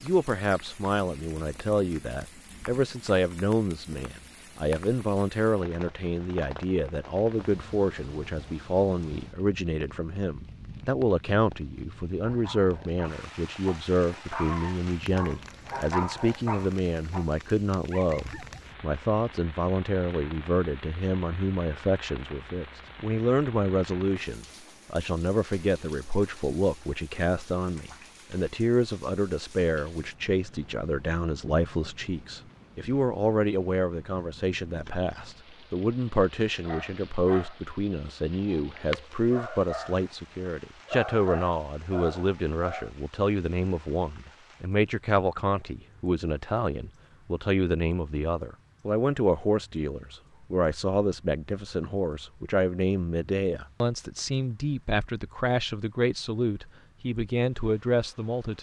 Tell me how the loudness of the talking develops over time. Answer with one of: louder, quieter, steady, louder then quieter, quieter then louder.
steady.